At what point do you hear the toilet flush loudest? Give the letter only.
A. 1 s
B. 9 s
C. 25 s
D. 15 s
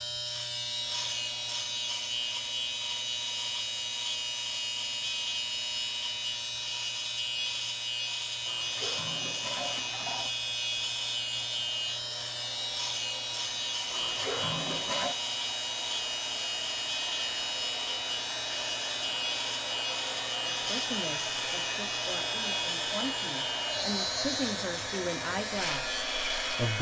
D.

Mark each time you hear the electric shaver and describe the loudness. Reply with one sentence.
The electric shaver can be heard from 0.0 to 26.7 s, at a steady volume.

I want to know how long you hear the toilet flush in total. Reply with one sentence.
The toilet flush can be heard for 3 seconds in total.